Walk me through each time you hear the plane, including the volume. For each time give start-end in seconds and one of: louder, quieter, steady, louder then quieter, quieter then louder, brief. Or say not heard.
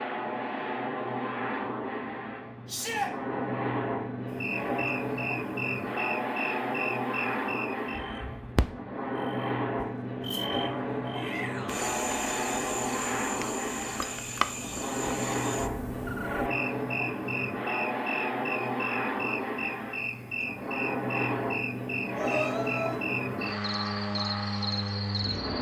0.0-25.5 steady.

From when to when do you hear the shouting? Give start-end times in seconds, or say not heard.
2.6-3.1, 11.1-11.8, 22.1-23.0.